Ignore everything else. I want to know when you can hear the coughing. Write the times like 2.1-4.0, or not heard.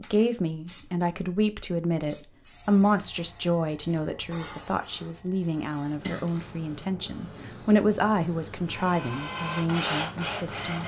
6.0-6.5.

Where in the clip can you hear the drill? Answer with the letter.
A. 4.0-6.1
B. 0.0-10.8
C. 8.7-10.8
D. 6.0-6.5
C.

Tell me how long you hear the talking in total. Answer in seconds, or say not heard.
11 s.